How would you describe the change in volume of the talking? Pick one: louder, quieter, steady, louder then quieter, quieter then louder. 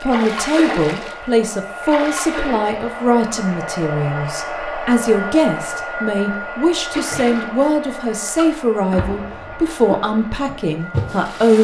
steady.